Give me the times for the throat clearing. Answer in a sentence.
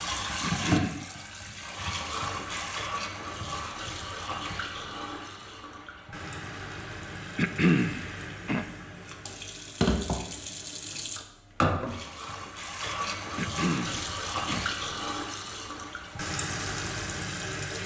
The throat clearing can be heard from 0.4 to 1.1 s, from 7.3 to 8.7 s and from 13.3 to 14.7 s.